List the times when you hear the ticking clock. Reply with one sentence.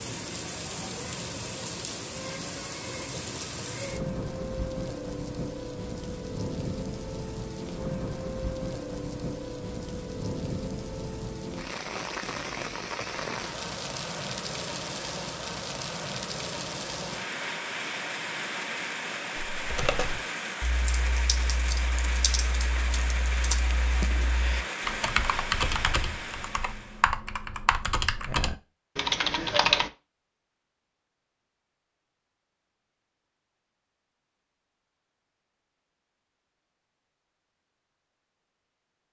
You can't hear the ticking clock here.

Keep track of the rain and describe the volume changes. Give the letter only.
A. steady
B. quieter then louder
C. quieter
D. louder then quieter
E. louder
A.